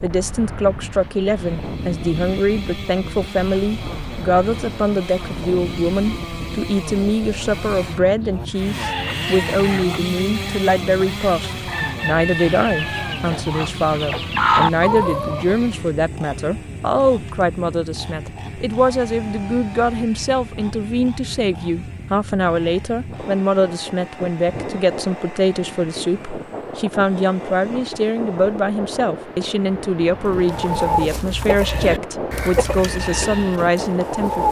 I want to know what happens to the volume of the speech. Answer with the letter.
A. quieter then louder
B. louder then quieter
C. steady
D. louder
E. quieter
C.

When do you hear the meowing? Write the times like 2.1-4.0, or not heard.
not heard.